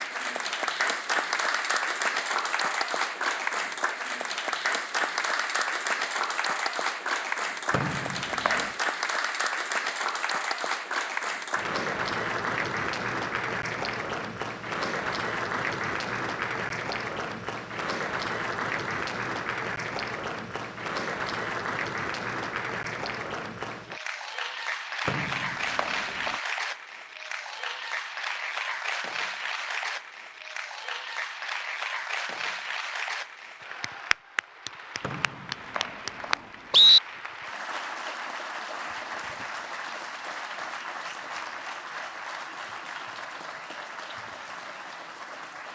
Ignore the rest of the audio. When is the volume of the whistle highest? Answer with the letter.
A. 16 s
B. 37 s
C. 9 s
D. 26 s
B.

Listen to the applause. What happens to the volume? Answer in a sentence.
The volume of the applause goes down.